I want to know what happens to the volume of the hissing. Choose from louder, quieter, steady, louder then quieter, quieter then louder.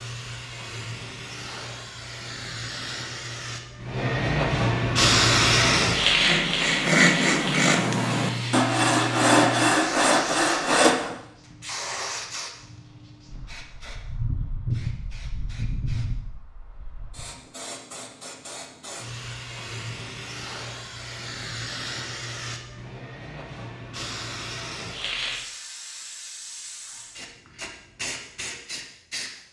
quieter.